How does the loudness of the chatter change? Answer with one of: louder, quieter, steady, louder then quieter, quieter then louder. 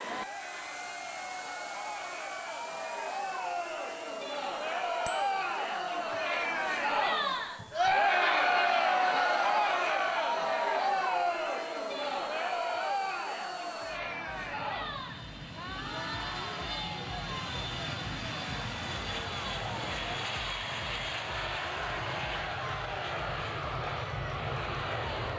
louder then quieter.